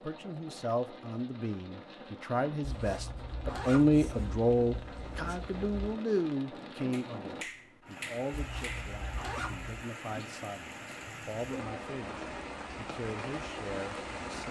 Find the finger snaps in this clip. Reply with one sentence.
You can hear the finger snaps from 6.9 to 8.9 s.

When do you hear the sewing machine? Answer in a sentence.
The sewing machine can't be heard in this clip.